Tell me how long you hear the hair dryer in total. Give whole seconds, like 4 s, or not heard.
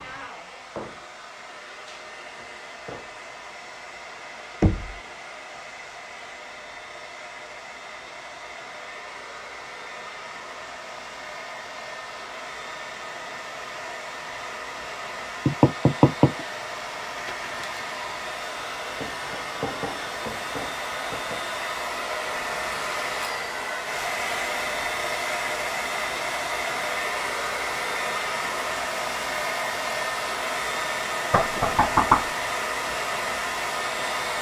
34 s.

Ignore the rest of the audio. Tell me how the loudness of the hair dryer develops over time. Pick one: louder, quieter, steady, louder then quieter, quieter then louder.
louder.